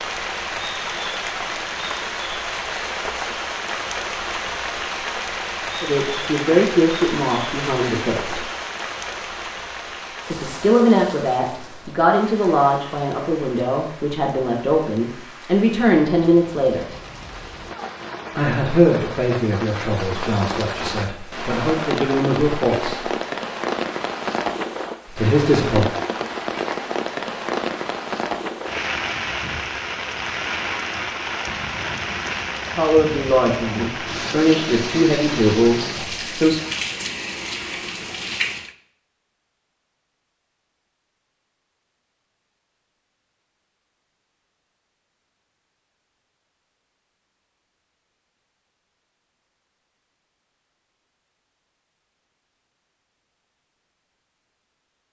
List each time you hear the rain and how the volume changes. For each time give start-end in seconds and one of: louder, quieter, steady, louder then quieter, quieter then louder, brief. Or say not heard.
0.0-38.8 quieter then louder.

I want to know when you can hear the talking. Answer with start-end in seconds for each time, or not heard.
5.8-8.4, 10.3-16.9, 18.4-23.1, 25.1-25.9, 32.8-36.6.